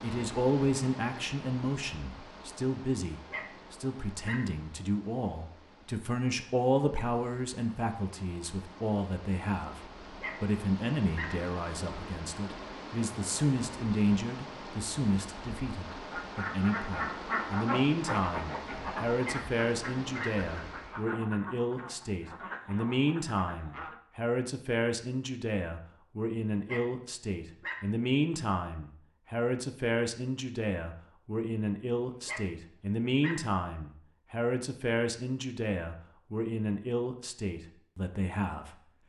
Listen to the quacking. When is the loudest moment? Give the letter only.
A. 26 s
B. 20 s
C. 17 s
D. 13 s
C.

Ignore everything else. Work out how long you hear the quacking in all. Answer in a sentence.
The quacking can be heard for 8 seconds in total.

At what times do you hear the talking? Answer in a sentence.
The talking can be heard from 0.0 to 38.9 s.